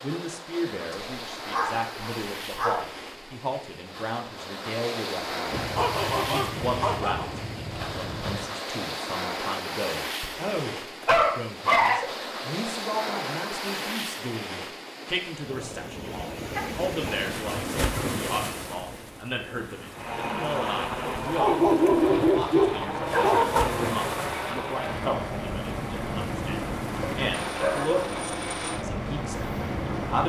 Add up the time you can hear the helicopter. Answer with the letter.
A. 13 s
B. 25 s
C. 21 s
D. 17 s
A.